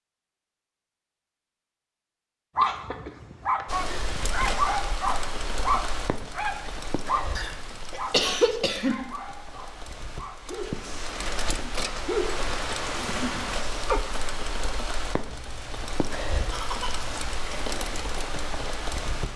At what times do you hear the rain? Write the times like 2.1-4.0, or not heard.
3.6-19.3.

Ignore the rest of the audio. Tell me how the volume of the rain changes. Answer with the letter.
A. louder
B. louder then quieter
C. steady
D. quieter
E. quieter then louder
E.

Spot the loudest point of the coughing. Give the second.
8 s.